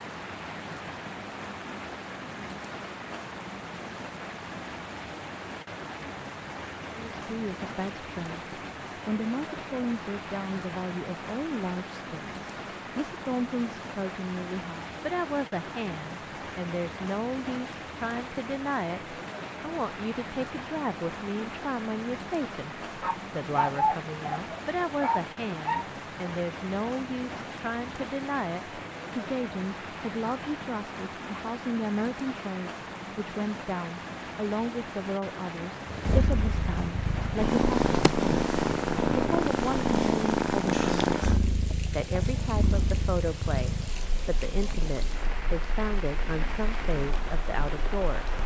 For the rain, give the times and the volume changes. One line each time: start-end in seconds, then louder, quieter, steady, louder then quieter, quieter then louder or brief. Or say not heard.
0.0-48.4 steady.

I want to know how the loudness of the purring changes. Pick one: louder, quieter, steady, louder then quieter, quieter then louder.
quieter.